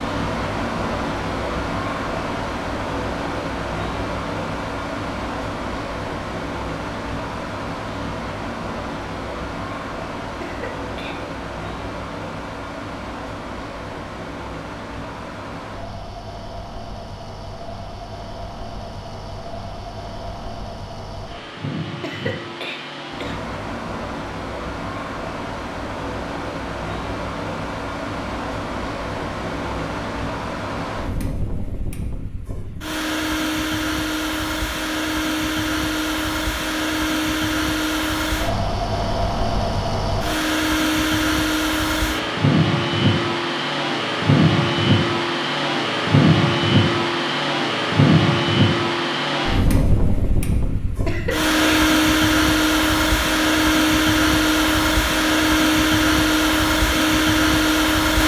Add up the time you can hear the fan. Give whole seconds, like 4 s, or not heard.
58 s.